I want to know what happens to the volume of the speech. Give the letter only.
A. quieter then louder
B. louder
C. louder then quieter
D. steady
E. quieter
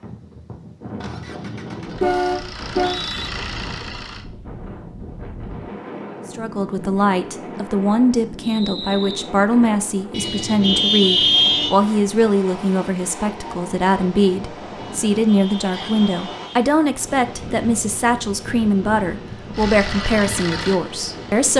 D.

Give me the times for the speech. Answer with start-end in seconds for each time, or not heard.
6.3-21.5.